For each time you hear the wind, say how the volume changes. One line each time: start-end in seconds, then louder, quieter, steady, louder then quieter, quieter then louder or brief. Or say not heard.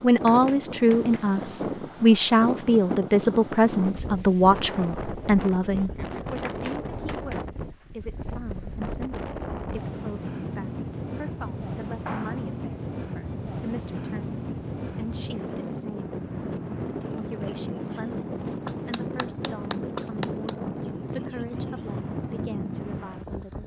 0.0-23.6 steady.